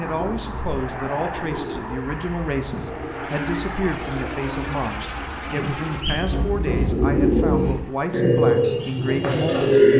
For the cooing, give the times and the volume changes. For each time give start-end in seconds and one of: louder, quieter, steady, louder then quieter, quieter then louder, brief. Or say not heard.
0.0-9.9 louder.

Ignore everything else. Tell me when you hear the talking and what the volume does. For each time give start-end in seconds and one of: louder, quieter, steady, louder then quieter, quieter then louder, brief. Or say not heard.
0.0-9.9 steady.